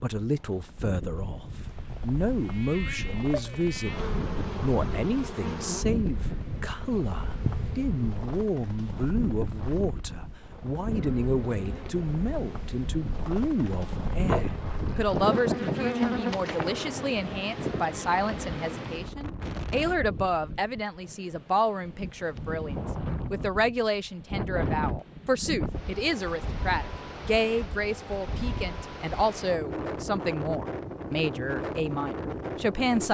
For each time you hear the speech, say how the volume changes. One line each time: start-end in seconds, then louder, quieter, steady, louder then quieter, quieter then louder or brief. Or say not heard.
0.0-33.0 steady.